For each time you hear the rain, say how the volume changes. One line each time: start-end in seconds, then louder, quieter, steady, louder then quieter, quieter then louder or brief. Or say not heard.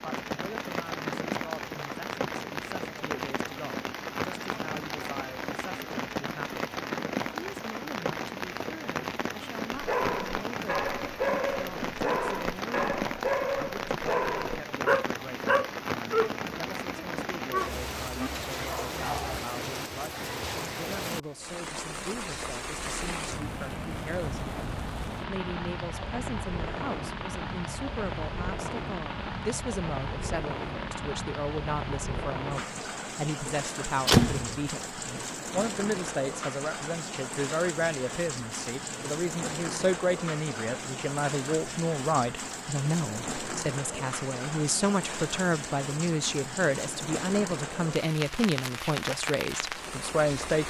0.0-50.6 steady.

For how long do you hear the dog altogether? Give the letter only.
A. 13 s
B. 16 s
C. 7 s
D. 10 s
D.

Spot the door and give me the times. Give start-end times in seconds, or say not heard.
33.5-34.6.